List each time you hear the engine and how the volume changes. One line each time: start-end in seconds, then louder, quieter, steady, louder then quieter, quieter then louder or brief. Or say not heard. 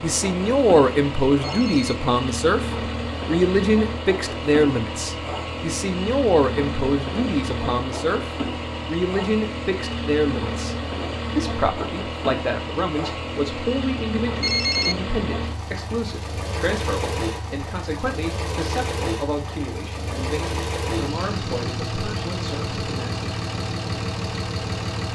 0.0-25.1 steady.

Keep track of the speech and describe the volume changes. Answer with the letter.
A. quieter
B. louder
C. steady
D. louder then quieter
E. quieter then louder
A.